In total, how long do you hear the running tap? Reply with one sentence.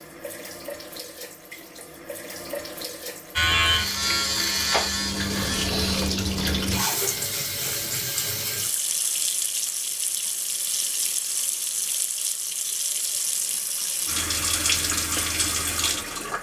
You can hear the running tap for 16 seconds altogether.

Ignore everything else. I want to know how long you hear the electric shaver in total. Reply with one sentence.
The electric shaver can be heard for 3 seconds in total.